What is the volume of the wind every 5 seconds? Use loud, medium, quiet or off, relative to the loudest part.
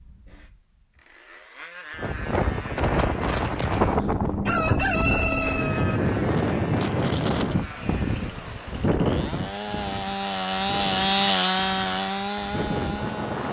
loud, loud, medium.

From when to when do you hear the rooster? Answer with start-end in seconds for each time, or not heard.
4.5-6.0.